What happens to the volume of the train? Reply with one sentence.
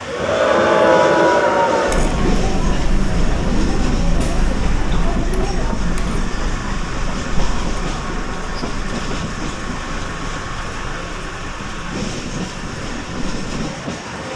The volume of the train stays about the same.